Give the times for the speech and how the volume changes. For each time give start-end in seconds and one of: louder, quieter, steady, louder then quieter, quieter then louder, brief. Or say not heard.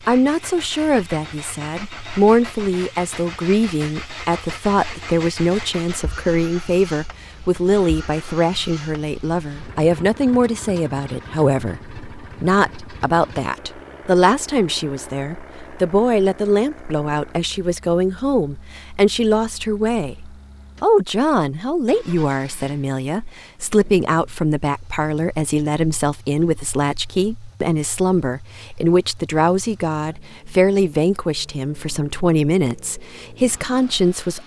0.1-34.4 steady.